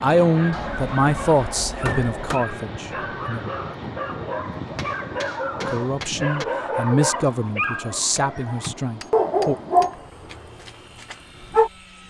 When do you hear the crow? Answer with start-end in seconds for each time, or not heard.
not heard.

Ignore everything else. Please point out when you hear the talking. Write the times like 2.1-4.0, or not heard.
0.0-3.5, 5.7-9.6.